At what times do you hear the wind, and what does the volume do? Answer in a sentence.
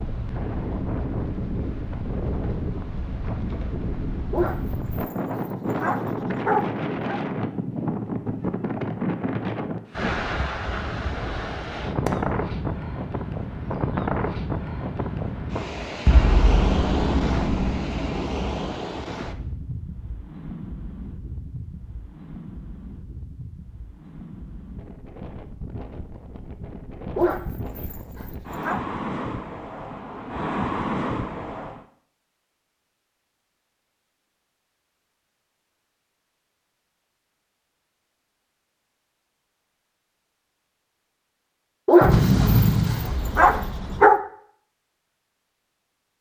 You can hear the wind from 0.0 to 31.9 s, getting quieter then louder.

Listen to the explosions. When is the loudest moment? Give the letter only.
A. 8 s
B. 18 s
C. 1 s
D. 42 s
D.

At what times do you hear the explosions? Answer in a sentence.
The explosions can be heard from 16.1 to 18.7 s and from 42.0 to 44.0 s.